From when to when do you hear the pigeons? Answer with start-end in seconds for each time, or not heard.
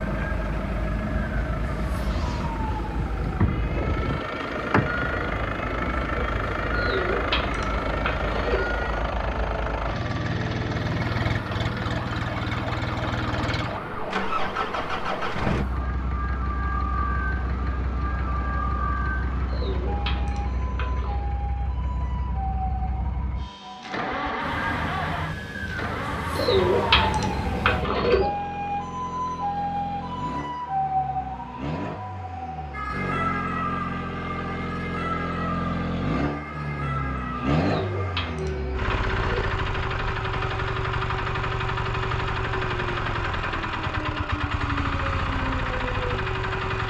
6.8-8.7, 19.4-21.2, 26.4-28.3, 37.5-39.5.